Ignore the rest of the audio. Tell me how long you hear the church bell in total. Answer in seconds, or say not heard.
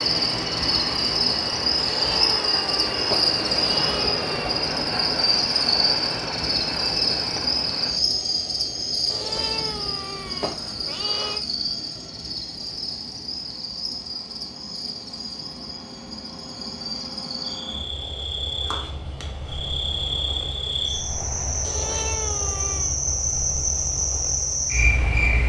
not heard.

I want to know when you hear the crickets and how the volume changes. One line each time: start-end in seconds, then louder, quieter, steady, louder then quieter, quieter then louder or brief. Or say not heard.
0.0-25.4 quieter then louder.